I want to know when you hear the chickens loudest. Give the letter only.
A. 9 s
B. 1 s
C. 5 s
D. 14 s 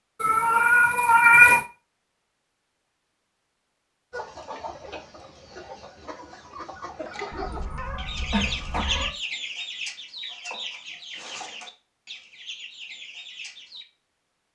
A.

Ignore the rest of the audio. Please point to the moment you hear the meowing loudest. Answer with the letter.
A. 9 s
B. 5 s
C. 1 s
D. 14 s
C.